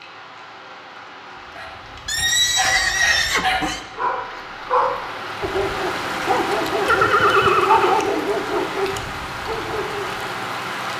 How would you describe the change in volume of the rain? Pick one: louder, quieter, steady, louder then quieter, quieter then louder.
louder.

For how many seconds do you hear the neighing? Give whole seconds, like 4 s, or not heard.
3 s.